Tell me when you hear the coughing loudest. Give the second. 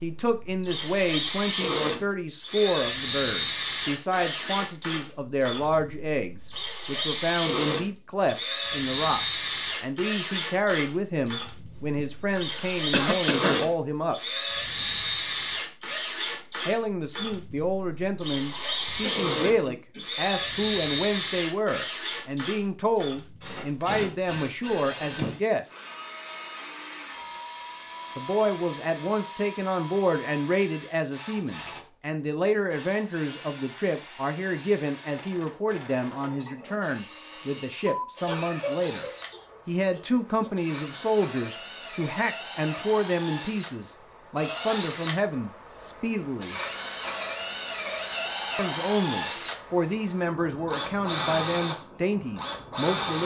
13 s.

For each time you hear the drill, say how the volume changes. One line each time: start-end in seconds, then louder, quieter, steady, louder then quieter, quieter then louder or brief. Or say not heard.
0.0-53.2 quieter then louder.